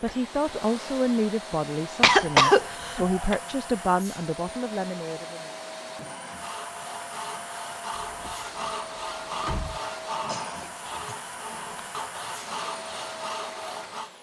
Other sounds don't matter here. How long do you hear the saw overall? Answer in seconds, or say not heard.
8 s.